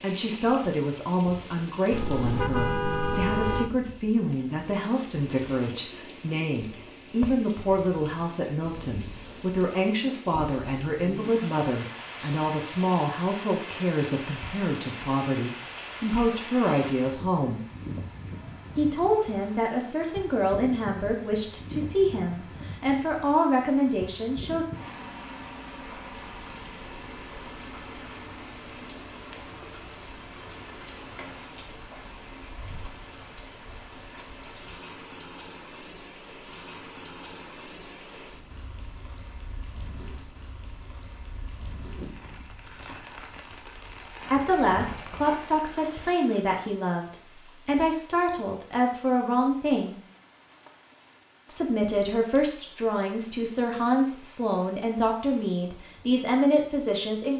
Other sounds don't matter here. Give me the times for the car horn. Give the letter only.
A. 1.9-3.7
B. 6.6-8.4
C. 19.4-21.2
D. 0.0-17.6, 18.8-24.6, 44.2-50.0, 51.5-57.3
A.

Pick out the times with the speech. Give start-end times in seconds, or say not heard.
0.0-17.6, 18.8-24.6, 44.2-50.0, 51.5-57.3.